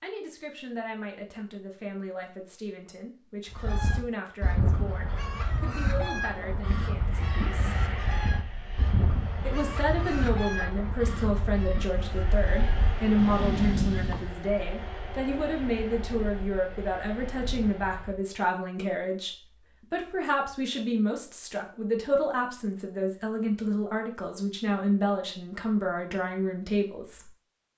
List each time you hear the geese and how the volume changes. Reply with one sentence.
The geese can be heard from 3.5 to 14.3 s, at a steady volume.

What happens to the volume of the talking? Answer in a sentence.
The loudness of the talking goes up.